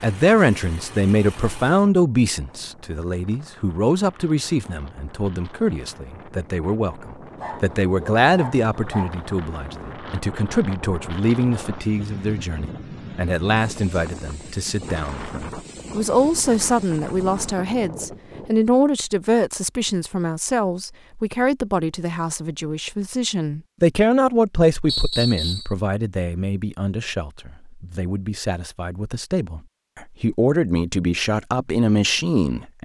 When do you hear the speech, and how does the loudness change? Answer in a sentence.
You can hear the speech from 0.0 to 32.8 s, at a steady volume.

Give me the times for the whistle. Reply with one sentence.
You can hear the whistle from 24.9 to 25.7 s.